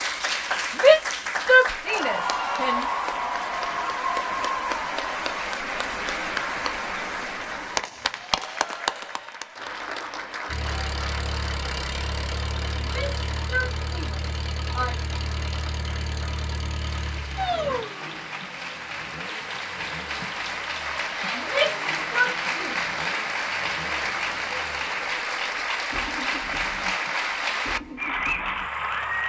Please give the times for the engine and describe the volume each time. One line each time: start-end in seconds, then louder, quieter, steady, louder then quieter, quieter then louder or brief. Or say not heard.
10.4-29.2 quieter.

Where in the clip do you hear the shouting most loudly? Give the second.
1 s.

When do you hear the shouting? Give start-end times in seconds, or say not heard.
0.8-2.9, 12.8-15.0, 21.3-22.9.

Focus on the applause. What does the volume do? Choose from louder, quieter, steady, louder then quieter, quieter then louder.
quieter then louder.